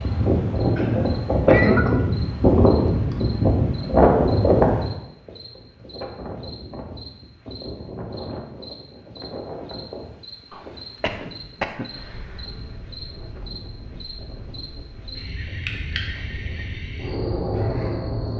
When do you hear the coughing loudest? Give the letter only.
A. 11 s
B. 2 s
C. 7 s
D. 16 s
B.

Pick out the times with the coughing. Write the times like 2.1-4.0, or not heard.
0.8-2.0, 10.5-12.4.